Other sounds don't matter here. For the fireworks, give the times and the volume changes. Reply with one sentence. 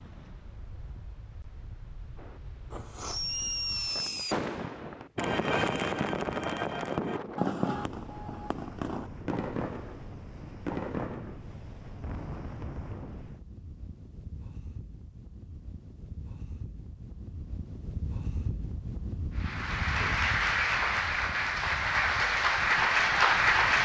The fireworks can be heard from 2.1 to 13.2 s, getting quieter.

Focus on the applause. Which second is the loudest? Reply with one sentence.
The volume of the applause peaks at 23 seconds.